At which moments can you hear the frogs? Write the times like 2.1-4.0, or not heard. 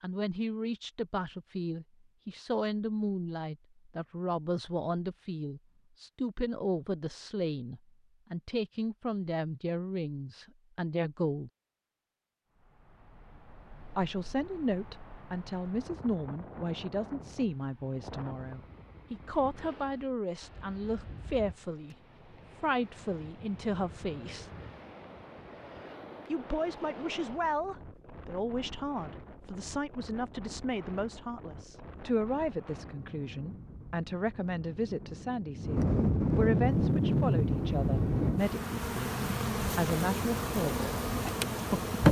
not heard.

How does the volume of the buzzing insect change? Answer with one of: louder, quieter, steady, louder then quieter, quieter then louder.
louder.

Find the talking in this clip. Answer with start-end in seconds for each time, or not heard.
0.0-11.5, 13.9-21.9, 22.6-24.5, 26.2-40.9.